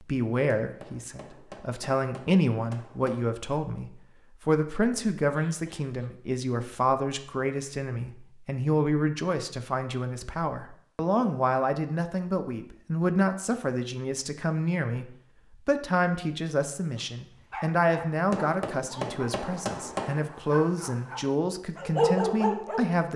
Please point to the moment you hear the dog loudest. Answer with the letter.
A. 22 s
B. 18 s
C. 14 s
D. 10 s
A.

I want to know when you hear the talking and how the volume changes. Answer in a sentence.
You can hear the talking from 0.0 to 23.1 s, at a steady volume.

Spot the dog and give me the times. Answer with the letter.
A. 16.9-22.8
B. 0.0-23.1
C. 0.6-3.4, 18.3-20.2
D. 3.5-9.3
A.